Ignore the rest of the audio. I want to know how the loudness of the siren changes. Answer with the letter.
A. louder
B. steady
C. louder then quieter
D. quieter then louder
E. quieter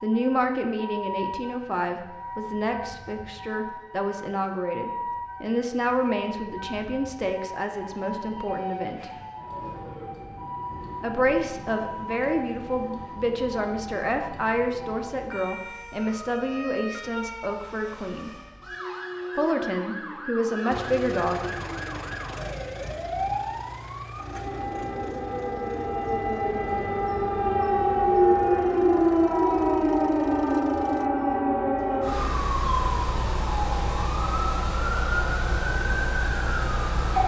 A.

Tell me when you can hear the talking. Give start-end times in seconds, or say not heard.
0.0-9.1, 11.0-18.3, 19.4-21.6.